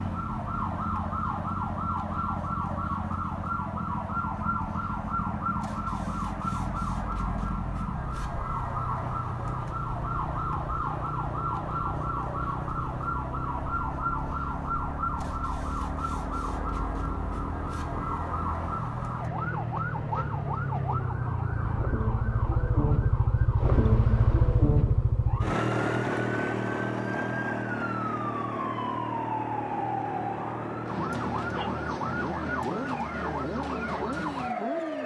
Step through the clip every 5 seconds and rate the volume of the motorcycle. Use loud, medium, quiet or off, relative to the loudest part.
medium, medium, medium, medium, loud, loud, medium.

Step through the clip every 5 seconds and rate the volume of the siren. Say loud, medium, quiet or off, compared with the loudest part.
loud, loud, loud, loud, medium, loud, loud.